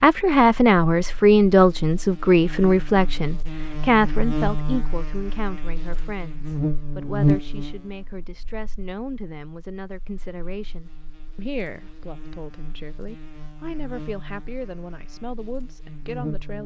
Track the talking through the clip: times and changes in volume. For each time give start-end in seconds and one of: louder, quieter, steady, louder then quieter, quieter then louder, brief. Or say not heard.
0.0-16.6 quieter.